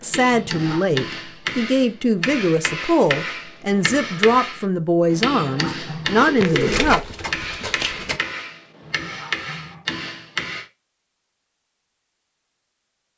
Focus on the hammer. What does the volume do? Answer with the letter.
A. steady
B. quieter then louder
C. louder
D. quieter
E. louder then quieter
A.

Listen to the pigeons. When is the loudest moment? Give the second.
7 s.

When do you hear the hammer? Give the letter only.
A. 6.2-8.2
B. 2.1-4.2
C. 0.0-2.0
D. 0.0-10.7
D.